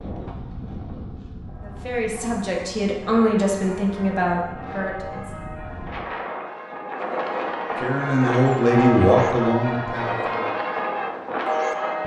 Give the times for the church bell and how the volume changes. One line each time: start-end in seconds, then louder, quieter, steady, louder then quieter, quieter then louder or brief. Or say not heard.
1.4-12.0 louder.